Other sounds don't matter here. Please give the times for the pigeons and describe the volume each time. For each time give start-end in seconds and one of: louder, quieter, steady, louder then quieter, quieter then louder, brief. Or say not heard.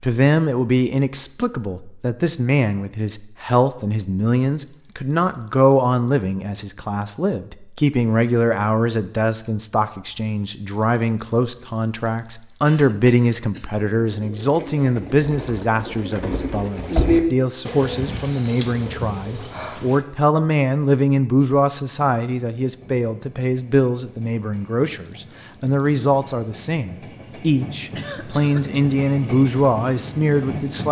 14.0-20.1 louder then quieter.